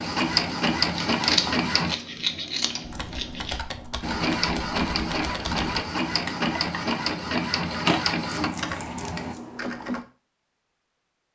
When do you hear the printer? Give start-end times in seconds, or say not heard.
0.0-1.9, 4.0-9.3.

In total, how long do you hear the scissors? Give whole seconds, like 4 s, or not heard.
4 s.